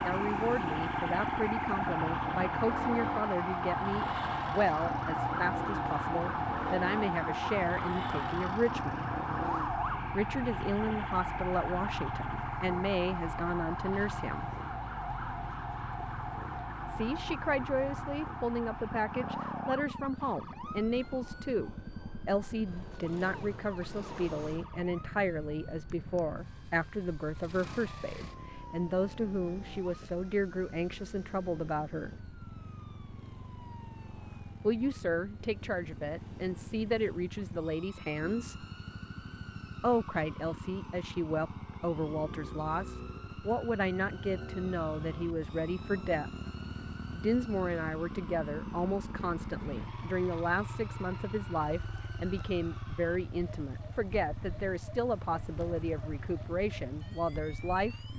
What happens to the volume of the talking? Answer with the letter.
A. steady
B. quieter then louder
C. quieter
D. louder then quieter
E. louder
A.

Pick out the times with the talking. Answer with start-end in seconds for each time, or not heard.
0.0-9.1, 10.1-14.5, 16.9-32.1, 34.6-38.6, 39.8-46.3, 47.1-58.1.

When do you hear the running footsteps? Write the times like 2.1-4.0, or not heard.
not heard.